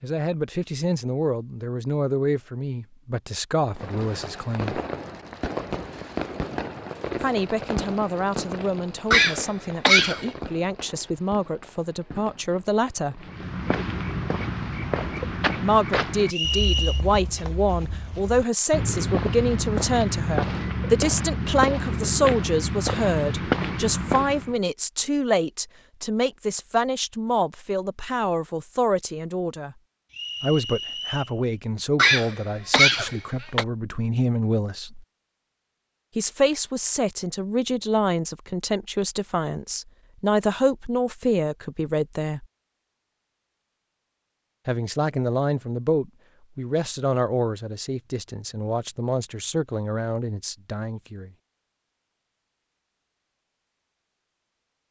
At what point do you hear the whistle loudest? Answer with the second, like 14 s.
17 s.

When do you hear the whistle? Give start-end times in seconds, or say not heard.
16.3-17.1, 30.1-31.4.